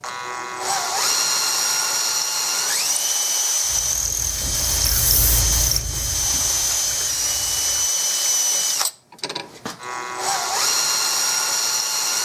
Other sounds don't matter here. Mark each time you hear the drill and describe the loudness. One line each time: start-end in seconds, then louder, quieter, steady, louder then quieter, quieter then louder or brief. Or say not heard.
0.0-12.1 steady.